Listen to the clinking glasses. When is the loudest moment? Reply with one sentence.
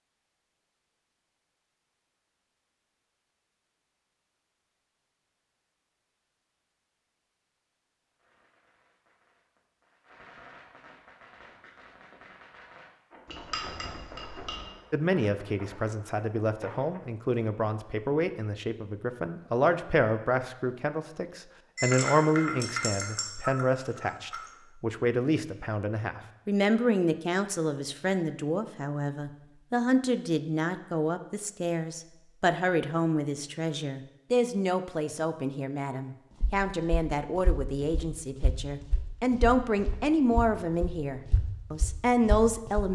The loudest moment of the clinking glasses is at 22 seconds.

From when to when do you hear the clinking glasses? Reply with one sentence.
The clinking glasses can be heard from 13.2 to 14.7 s and from 21.8 to 24.5 s.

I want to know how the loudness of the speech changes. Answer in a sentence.
The loudness of the speech stays about the same.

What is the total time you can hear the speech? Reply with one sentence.
The speech can be heard for 28 seconds in total.